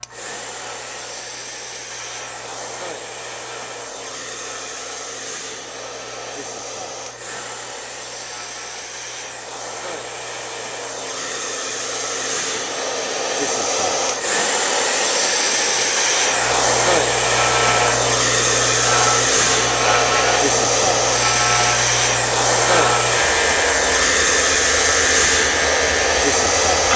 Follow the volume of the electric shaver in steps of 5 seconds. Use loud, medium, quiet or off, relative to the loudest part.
quiet, quiet, quiet, loud, loud, loud.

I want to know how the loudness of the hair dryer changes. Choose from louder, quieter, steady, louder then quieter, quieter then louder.
louder.